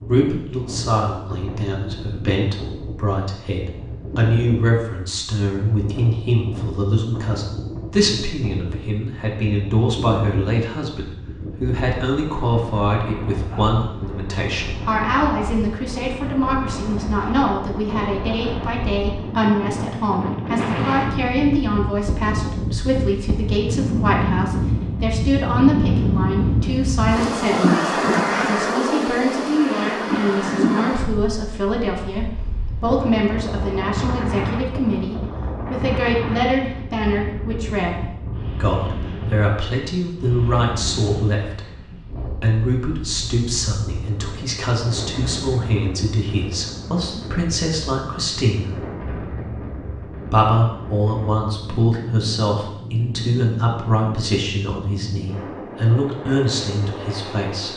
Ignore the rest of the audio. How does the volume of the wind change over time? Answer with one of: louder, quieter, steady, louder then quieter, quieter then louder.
louder then quieter.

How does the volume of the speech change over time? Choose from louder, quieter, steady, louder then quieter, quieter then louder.
steady.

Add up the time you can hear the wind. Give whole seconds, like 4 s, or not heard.
58 s.